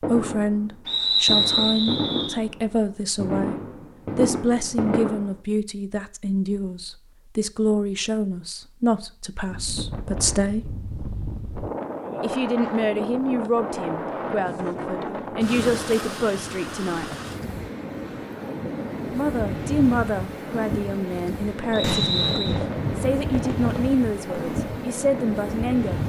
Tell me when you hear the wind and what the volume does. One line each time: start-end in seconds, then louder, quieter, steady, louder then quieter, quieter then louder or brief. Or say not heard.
9.4-26.0 steady.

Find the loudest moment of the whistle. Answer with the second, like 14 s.
1 s.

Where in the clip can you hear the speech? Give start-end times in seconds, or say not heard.
0.1-10.8, 12.2-17.1, 19.1-26.0.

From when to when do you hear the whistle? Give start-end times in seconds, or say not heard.
0.8-2.4, 21.7-22.6.